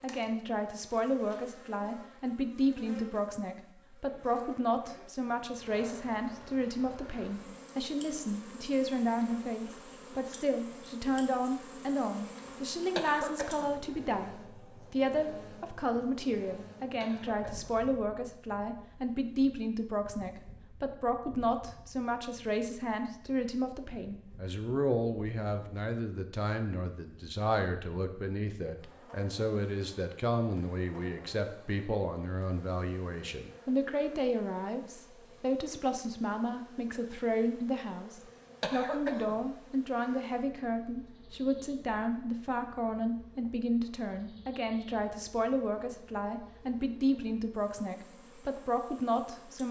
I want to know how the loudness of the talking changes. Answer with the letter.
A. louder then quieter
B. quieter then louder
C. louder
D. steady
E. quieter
D.